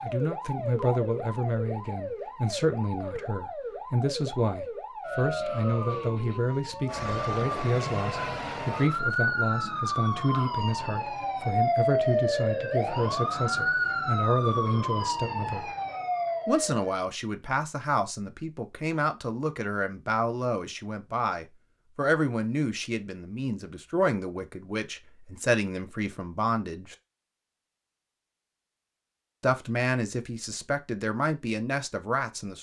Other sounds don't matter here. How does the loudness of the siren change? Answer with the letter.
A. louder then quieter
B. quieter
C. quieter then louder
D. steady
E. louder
E.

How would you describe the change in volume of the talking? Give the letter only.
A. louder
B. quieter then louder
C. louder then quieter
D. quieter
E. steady
E.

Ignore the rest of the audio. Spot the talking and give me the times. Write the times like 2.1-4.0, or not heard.
0.0-15.7, 16.4-26.9, 29.4-32.5.